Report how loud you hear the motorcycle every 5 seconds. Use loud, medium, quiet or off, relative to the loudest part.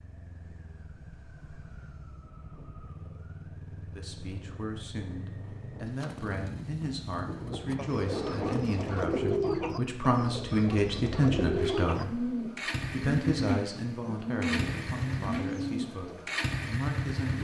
quiet, medium, loud, loud.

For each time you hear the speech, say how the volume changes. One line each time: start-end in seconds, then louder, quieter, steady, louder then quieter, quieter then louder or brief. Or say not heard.
3.9-17.3 louder then quieter.